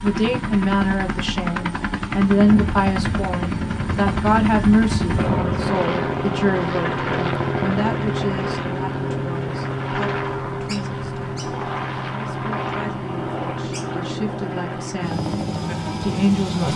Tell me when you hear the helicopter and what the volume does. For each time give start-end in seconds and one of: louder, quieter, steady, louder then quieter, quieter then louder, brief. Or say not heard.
0.0-16.7 steady.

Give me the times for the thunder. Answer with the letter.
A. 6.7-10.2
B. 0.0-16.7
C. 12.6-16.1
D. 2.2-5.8
D.